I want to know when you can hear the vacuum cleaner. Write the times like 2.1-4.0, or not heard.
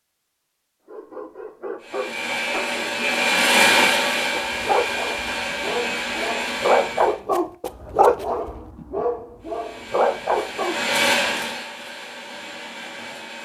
1.8-7.2, 9.4-13.4.